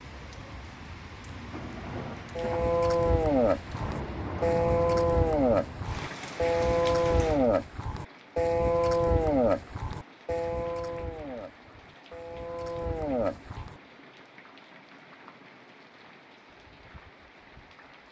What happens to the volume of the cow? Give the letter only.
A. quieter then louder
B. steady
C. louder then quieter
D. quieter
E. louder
D.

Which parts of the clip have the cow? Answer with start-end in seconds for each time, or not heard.
2.4-13.8.